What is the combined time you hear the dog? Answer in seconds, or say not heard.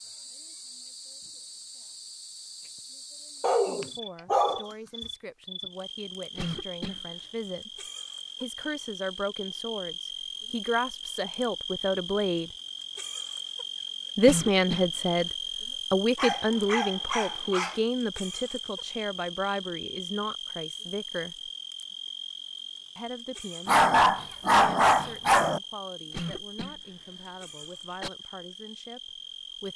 5 s.